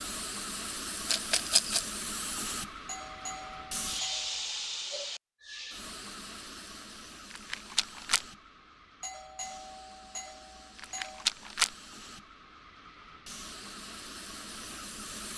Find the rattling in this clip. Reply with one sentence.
You can hear the rattling from 1.1 to 1.9 s, from 7.3 to 8.2 s and from 10.8 to 11.7 s.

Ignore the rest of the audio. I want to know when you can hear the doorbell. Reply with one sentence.
You can hear the doorbell from 2.9 to 4.5 s and from 9.0 to 11.3 s.